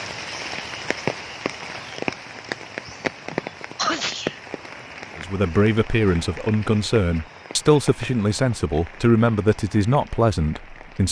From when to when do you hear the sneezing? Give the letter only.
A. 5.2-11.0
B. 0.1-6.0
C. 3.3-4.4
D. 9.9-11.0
C.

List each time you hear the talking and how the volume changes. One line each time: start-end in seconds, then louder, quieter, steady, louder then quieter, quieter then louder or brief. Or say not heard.
5.2-11.0 steady.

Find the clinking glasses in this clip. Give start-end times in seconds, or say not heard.
not heard.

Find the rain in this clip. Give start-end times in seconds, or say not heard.
0.0-11.0.